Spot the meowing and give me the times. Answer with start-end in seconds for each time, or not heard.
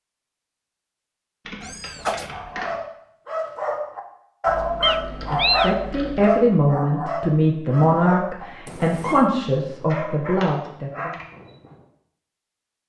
1.6-2.4, 4.8-5.8, 8.7-9.3.